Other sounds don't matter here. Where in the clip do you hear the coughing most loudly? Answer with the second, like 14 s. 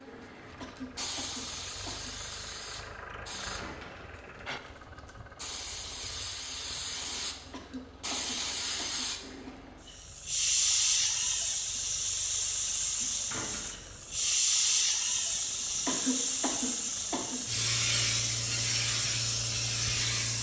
16 s.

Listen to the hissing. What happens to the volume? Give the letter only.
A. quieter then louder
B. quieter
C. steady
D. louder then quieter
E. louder
E.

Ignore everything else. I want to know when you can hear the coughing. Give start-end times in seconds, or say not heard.
0.6-2.1, 7.5-9.6, 15.8-17.4.